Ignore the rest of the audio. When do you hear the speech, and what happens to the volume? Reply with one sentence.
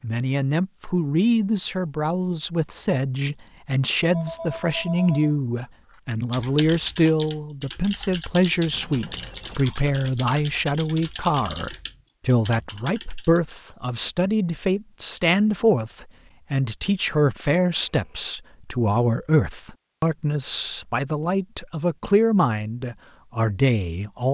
The speech can be heard from 0.0 to 24.2 s, at a steady volume.